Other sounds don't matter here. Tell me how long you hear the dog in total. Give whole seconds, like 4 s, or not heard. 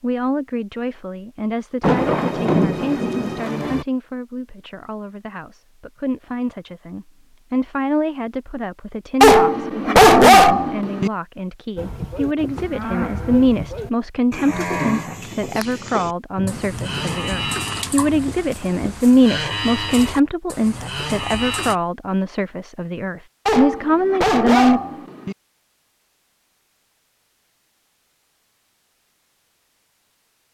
4 s.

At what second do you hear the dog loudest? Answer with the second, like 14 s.
10 s.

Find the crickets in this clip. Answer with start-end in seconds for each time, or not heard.
not heard.